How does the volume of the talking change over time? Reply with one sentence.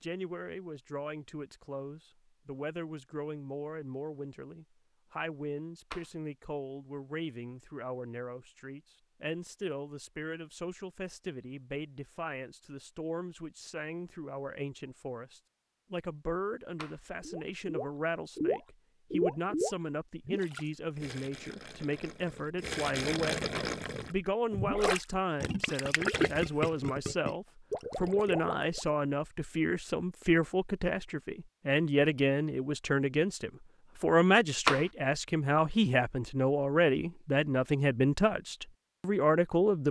The loudness of the talking goes up.